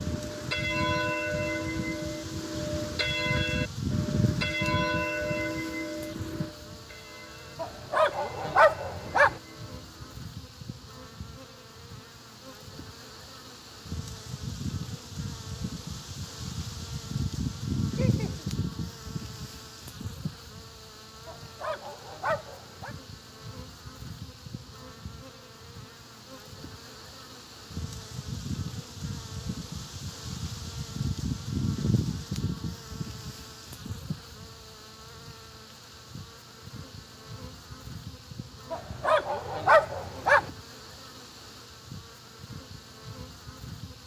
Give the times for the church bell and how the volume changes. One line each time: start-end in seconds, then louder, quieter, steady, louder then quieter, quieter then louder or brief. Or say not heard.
0.0-10.2 quieter.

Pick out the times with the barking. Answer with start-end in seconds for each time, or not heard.
7.6-9.4, 21.2-22.9, 38.7-40.5.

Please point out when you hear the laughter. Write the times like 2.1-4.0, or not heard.
17.9-18.5.